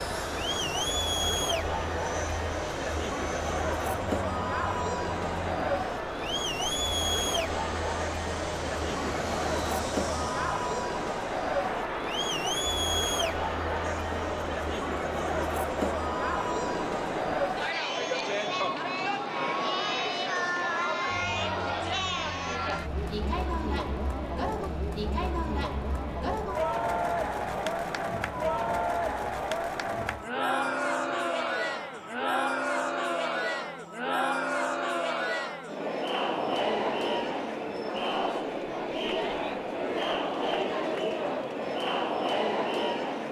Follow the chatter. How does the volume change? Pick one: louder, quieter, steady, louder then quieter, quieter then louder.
steady.